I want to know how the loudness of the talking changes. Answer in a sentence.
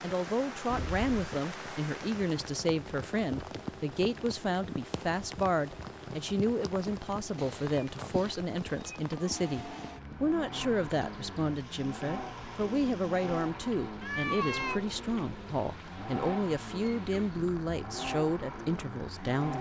The loudness of the talking stays about the same.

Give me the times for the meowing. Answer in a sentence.
The meowing can be heard from 0.7 to 1.3 s, from 7.3 to 9.3 s and from 14.0 to 14.8 s.